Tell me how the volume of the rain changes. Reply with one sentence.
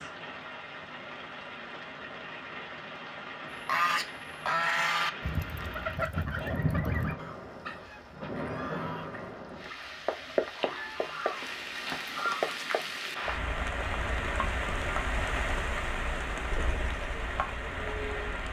The volume of the rain goes up.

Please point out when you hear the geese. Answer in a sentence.
You can hear the geese from 3.6 to 12.6 s.